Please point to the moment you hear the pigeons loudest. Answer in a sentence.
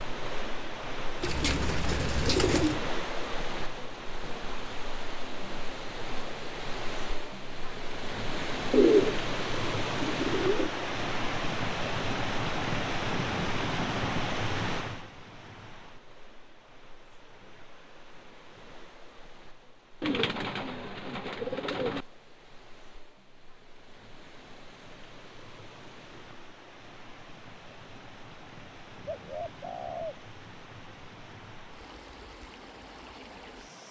The loudest moment of the pigeons is at 9 seconds.